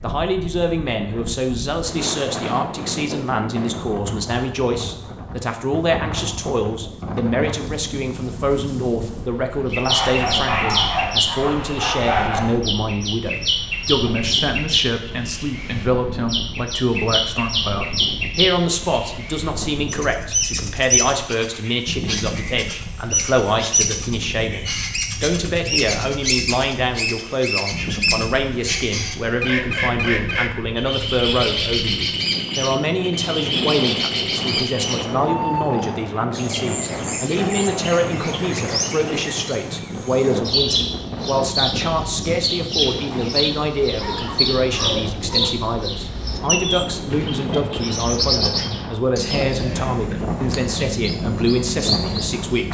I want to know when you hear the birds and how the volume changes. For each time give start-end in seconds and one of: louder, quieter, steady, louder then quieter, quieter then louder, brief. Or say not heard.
9.7-52.6 steady.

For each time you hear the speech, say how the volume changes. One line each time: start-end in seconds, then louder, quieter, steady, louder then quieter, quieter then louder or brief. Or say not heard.
0.0-52.6 steady.